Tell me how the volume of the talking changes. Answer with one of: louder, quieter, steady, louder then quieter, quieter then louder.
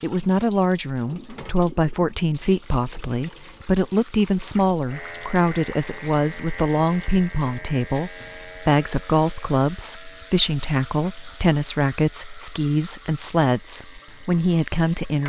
steady.